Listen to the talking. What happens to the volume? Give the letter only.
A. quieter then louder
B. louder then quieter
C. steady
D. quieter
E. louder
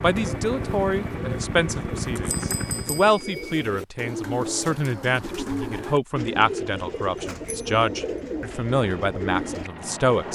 C.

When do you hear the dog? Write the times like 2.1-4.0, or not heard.
not heard.